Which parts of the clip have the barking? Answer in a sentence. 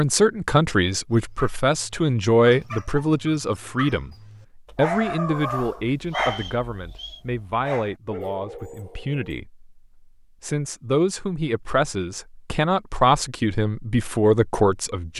The barking can be heard from 1.1 to 9.4 s.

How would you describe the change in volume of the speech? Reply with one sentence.
The loudness of the speech goes down, then up.